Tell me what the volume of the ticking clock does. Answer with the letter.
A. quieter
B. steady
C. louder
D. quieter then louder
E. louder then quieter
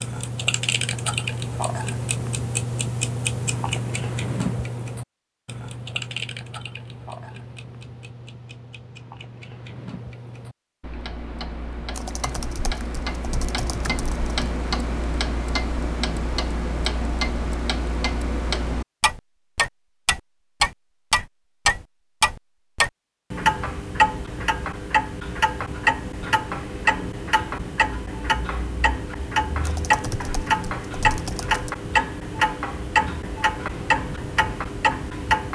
D.